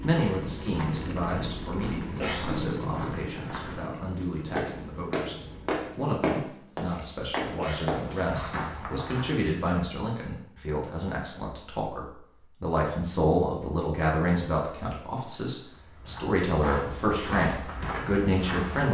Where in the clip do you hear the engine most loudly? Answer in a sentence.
The volume of the engine peaks at 3 seconds.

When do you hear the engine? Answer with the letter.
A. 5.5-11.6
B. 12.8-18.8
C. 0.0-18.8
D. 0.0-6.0
D.